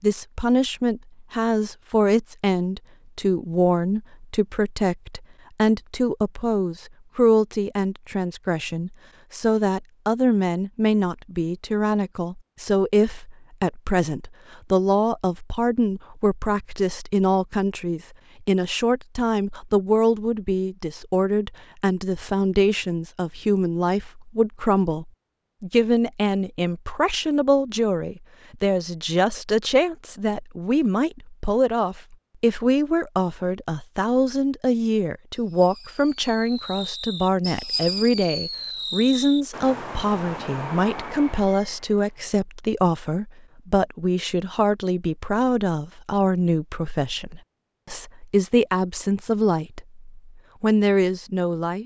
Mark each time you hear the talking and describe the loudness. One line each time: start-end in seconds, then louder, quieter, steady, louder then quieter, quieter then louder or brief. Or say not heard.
0.0-51.8 steady.